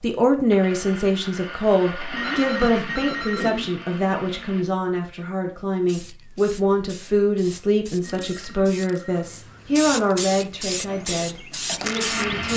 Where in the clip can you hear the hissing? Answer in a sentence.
You can hear the hissing from 5.8 to 12.5 s.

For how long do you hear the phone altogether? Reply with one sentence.
The phone can be heard for 3 seconds in total.